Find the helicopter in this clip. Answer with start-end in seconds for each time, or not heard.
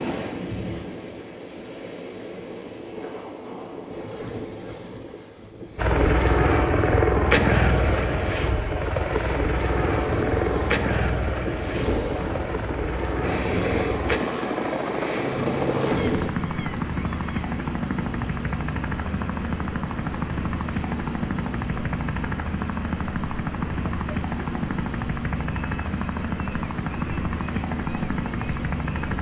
5.8-29.1.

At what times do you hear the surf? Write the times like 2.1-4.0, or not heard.
0.0-16.3.